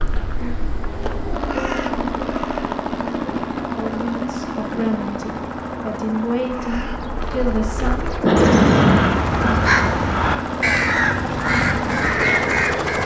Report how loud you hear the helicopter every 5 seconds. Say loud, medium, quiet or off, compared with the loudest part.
loud, medium, loud.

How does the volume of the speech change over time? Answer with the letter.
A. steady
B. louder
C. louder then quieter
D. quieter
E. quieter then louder
B.